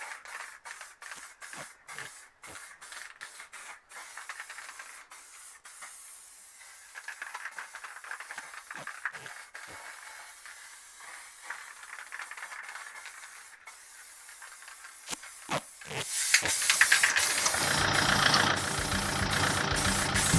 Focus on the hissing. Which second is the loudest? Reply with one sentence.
The loudest moment of the hissing is at 17 seconds.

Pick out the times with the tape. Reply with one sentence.
You can hear the tape from 1.1 to 2.6 s, from 8.3 to 9.8 s and from 15.1 to 16.6 s.